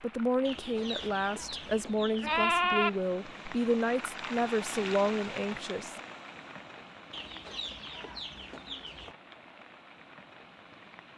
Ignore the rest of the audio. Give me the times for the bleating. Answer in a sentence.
You can hear the bleating from 0.9 to 2.9 s.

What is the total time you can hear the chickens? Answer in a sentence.
The chickens can be heard for 4 seconds in total.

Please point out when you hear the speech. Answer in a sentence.
The speech can be heard from 0.0 to 6.0 s.